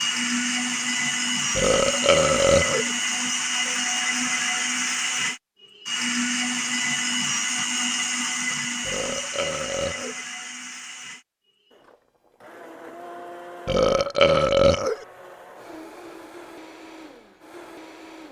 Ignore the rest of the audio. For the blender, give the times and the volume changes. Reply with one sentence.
You can hear the blender from 0.0 to 18.2 s, getting quieter.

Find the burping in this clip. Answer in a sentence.
You can hear the burping from 1.6 to 2.9 s, from 8.8 to 10.2 s and from 13.7 to 15.1 s.